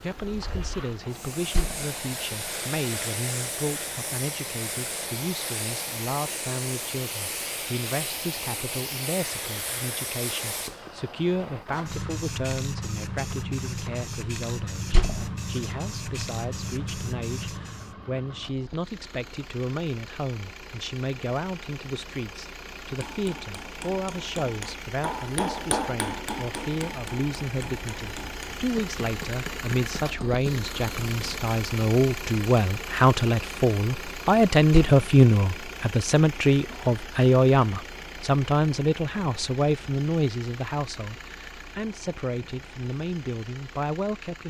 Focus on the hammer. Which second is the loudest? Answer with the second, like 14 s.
26 s.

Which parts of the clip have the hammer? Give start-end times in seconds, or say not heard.
22.9-31.4.